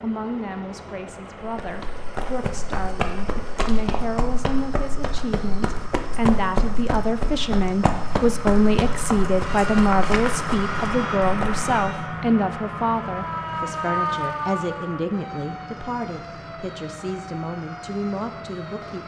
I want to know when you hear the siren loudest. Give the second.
14 s.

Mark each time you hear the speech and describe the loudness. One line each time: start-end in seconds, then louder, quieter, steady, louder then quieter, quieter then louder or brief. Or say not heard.
0.0-19.0 louder then quieter.